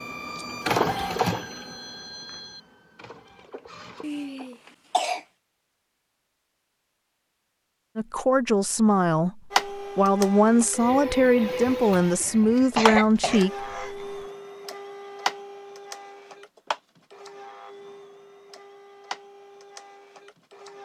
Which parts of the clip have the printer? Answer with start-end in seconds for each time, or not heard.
0.0-4.5, 9.5-20.7.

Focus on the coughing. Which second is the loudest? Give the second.
13 s.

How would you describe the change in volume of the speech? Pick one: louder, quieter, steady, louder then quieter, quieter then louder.
steady.